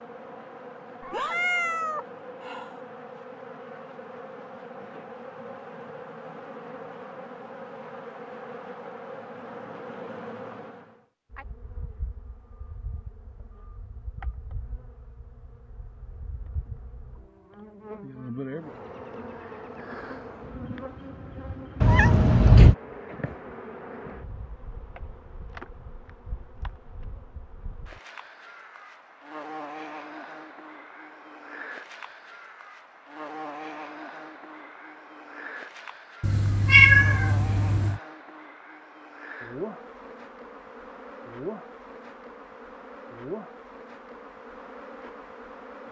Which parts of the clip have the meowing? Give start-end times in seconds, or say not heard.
1.0-2.7, 21.8-22.8, 36.2-38.0.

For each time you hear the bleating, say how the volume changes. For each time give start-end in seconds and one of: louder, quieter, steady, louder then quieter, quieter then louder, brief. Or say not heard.
not heard.